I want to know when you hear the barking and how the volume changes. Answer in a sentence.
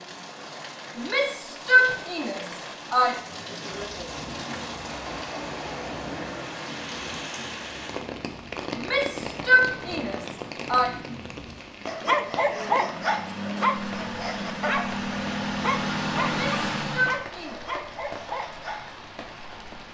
The barking can be heard from 11.8 to 19.0 s, getting quieter.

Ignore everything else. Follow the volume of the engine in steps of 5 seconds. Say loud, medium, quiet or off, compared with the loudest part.
quiet, quiet, medium, loud.